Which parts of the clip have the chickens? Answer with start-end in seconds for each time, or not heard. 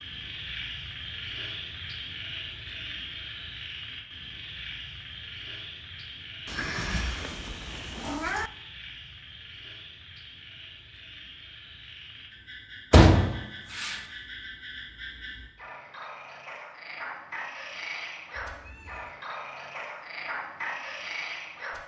not heard.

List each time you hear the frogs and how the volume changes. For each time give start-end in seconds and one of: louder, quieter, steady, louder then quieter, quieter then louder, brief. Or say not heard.
0.0-21.8 quieter then louder.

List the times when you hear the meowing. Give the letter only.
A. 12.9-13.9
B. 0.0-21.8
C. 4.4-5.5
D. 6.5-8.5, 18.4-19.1
D.